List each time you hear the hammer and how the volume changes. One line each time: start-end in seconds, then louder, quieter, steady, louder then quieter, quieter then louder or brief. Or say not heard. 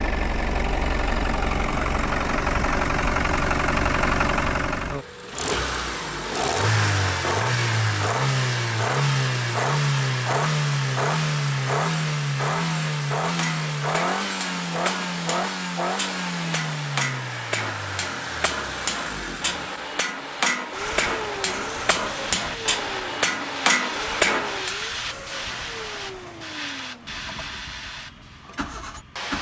13.2-24.8 louder.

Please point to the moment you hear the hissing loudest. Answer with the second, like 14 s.
25 s.